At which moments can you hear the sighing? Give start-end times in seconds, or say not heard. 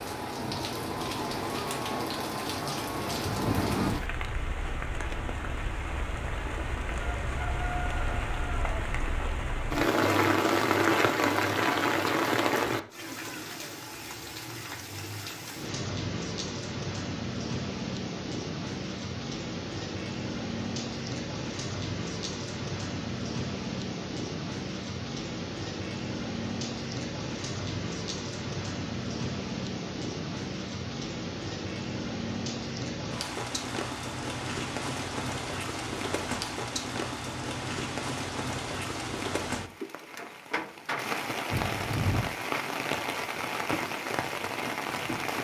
41.5-42.3.